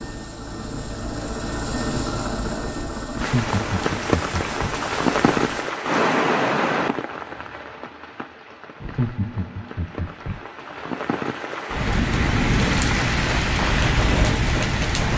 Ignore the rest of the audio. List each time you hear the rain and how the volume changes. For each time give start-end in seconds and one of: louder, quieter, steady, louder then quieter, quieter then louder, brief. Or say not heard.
3.1-15.1 quieter then louder.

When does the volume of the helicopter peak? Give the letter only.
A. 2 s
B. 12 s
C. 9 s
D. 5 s
A.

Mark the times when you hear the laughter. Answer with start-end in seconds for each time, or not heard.
3.1-4.7, 8.8-10.3.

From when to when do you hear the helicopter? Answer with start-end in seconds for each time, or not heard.
0.0-5.7.